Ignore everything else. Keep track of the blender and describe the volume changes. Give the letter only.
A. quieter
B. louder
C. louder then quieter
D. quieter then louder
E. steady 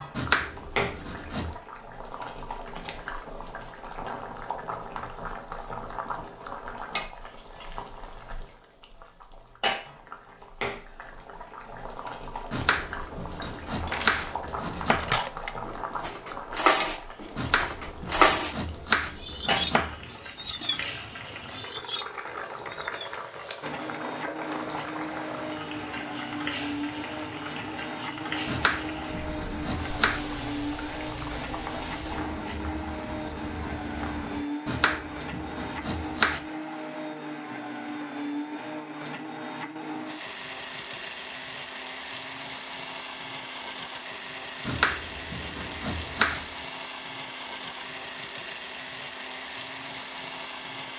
E.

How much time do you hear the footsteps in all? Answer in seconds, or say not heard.
not heard.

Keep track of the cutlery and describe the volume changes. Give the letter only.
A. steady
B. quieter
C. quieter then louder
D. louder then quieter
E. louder
D.